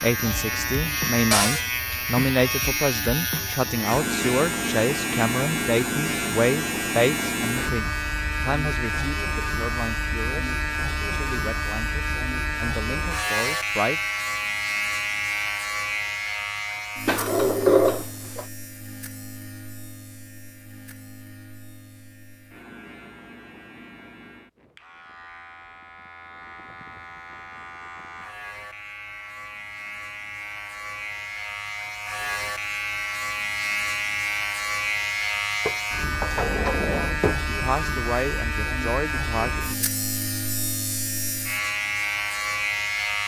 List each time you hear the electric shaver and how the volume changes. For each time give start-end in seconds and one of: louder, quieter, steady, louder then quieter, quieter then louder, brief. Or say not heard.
0.0-43.2 quieter then louder.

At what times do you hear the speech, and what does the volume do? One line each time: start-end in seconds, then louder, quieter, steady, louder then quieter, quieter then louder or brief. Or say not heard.
0.0-14.0 quieter
37.5-39.9 brief.